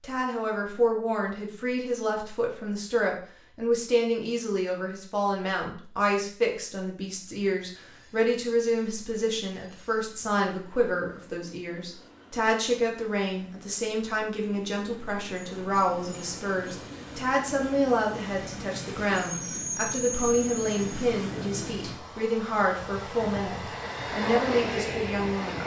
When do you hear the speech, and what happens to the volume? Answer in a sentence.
You can hear the speech from 0.0 to 25.6 s, at a steady volume.